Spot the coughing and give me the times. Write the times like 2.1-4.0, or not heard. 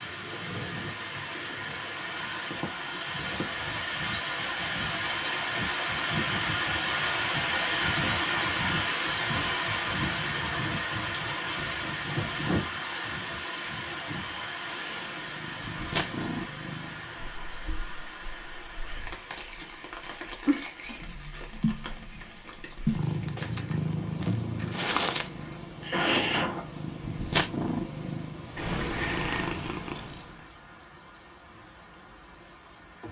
25.4-26.6.